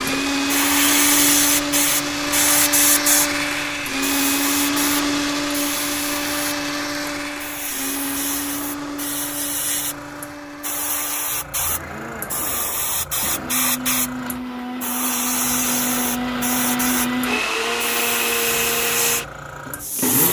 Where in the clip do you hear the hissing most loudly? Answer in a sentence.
The loudest moment of the hissing is at 1 second.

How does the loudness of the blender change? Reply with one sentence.
The loudness of the blender goes down, then up.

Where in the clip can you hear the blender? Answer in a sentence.
The blender can be heard from 0.0 to 20.2 s.